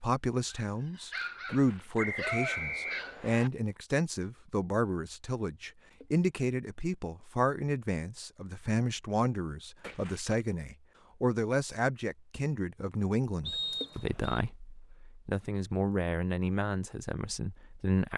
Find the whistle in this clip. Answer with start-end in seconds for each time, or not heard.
1.9-3.5, 13.4-14.4.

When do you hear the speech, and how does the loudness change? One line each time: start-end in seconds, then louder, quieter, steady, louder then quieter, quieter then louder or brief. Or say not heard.
0.0-18.1 steady.